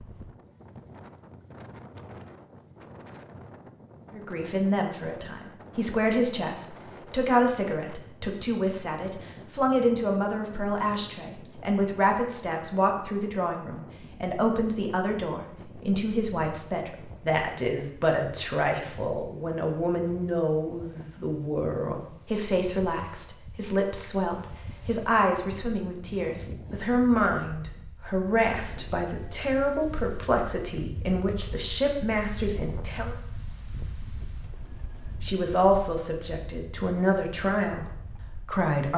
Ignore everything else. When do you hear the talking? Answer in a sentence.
The talking can be heard from 4.1 to 33.1 s and from 35.2 to 38.9 s.